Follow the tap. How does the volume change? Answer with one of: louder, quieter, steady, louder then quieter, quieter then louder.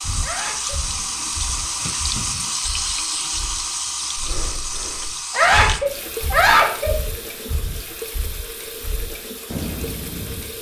quieter.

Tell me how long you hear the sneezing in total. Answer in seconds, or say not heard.
2 s.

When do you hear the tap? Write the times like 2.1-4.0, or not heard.
0.0-10.5.